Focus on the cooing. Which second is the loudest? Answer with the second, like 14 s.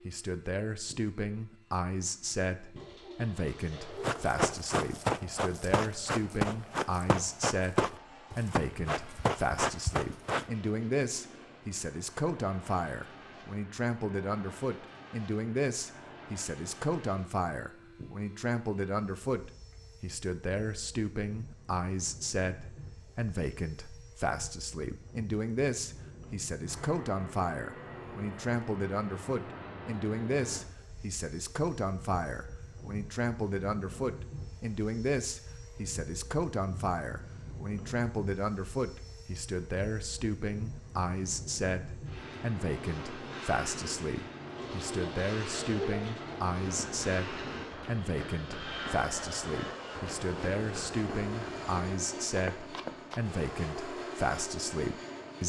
46 s.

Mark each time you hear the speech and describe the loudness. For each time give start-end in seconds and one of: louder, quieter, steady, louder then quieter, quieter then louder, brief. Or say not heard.
0.1-55.4 steady.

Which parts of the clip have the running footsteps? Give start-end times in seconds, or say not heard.
4.0-10.4, 46.6-53.2.